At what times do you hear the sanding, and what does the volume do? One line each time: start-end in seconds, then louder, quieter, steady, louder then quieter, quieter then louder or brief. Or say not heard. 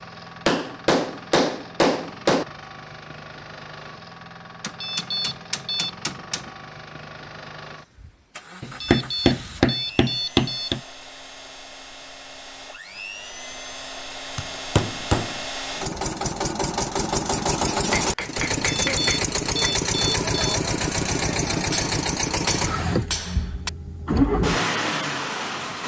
not heard.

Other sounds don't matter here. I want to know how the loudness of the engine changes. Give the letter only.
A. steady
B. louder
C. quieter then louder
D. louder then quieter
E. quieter
B.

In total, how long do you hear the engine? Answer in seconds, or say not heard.
26 s.